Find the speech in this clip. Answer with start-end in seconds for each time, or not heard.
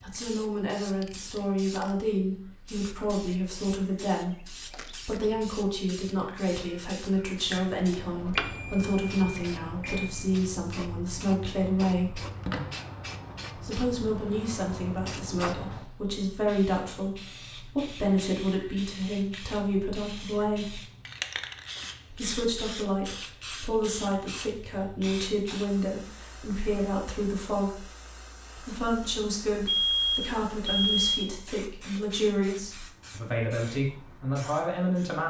0.0-12.2, 13.6-20.8, 22.1-27.9, 28.6-35.2.